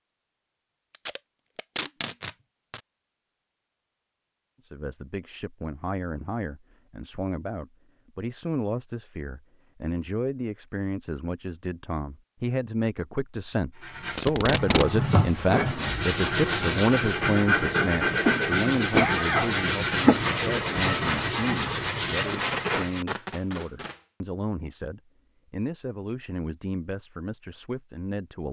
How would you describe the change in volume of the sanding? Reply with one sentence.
The loudness of the sanding stays about the same.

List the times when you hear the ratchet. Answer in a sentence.
The ratchet can't be heard in this clip.